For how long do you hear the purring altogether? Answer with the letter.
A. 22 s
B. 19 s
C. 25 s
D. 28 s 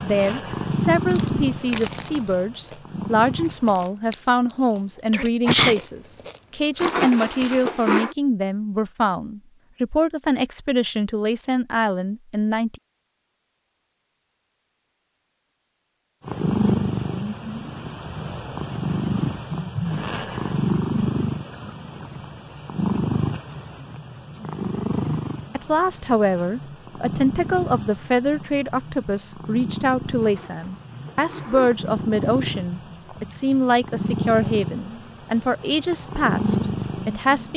C.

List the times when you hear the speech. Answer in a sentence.
You can hear the speech from 0.0 to 12.8 s and from 25.6 to 37.5 s.